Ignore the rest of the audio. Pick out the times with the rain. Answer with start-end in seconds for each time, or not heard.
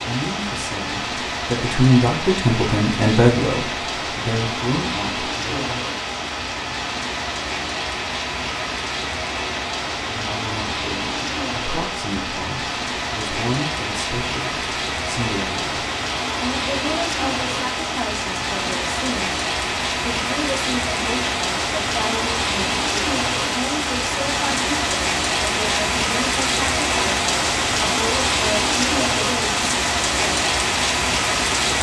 0.0-31.7.